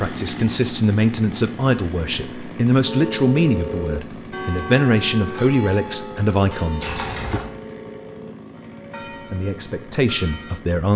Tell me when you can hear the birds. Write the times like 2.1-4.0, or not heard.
not heard.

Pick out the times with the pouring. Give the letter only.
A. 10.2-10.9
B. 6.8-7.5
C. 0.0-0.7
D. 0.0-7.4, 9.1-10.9
B.